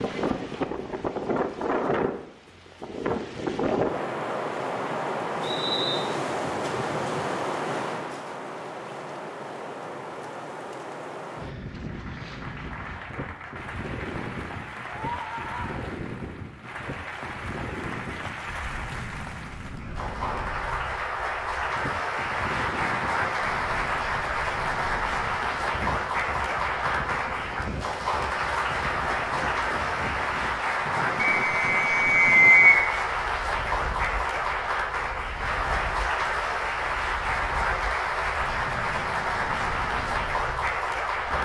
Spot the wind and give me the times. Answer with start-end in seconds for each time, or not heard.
0.0-41.3.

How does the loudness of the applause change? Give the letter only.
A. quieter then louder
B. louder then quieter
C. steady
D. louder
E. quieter
D.